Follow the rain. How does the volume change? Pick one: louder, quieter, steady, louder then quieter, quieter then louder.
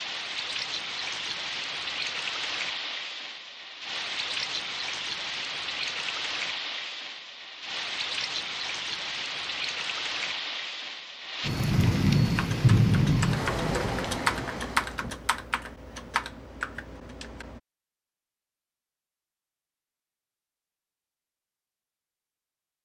louder.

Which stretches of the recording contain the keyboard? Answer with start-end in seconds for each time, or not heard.
12.3-17.6.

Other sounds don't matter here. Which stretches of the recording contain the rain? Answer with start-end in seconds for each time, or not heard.
0.0-15.2.